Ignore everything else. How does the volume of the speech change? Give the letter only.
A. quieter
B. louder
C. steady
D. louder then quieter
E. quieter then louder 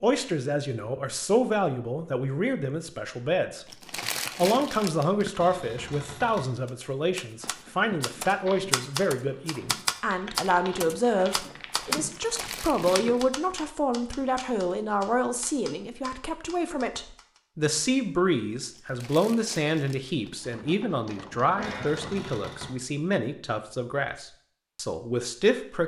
C.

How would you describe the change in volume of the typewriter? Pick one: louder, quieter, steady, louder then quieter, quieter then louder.
quieter.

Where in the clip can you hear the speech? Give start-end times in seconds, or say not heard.
0.0-3.6, 4.3-25.8.